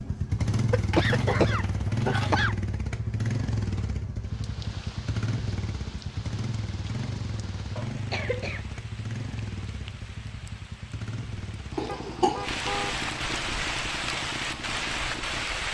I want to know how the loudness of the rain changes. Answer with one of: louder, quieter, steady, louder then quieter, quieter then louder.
louder.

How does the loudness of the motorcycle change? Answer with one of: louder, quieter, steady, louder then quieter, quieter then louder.
quieter.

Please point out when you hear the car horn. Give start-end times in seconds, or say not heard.
11.8-13.1.